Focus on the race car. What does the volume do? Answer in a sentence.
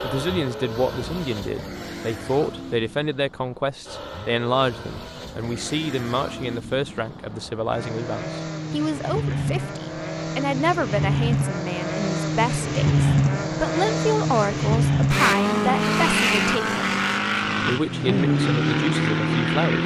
The loudness of the race car goes up.